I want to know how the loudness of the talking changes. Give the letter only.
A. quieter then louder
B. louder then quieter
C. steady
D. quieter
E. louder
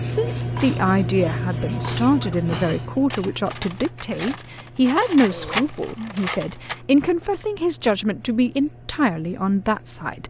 C.